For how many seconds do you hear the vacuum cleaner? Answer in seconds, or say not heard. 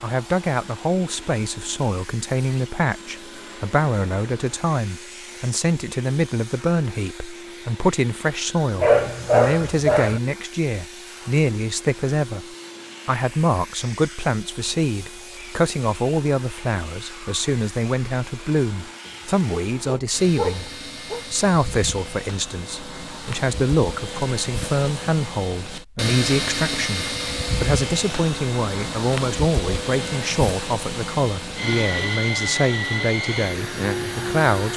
35 s.